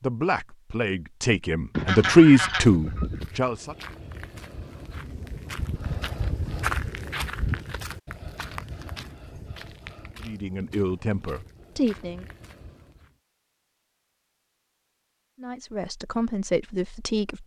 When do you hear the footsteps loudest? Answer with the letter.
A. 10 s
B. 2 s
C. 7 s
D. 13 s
C.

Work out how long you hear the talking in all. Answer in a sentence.
The talking can be heard for 8 seconds in total.